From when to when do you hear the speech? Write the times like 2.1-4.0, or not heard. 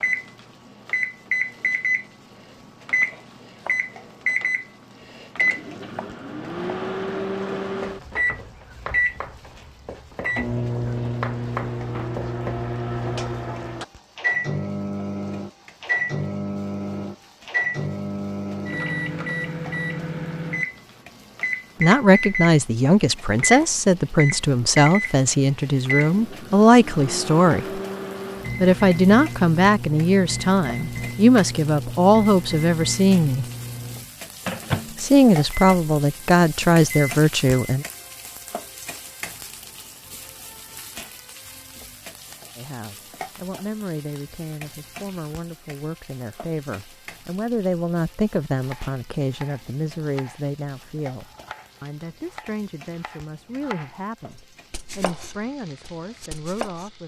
21.8-27.8, 28.6-33.5, 35.0-37.9, 42.5-57.0.